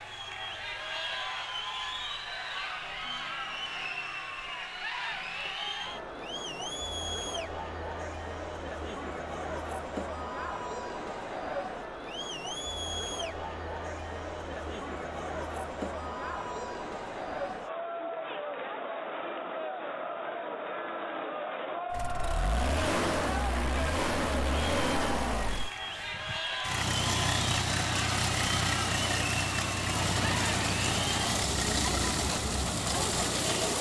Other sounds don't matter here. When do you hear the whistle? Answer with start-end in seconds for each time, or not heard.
not heard.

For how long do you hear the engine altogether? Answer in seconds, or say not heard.
12 s.